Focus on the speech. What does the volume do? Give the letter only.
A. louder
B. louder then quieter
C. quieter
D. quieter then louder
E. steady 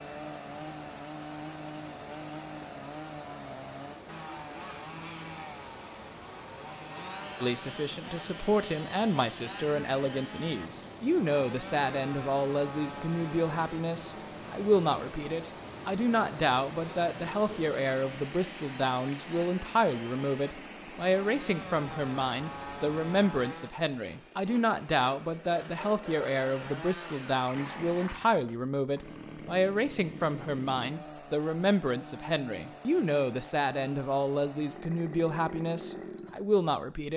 E.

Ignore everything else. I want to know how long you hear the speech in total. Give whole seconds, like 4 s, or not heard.
30 s.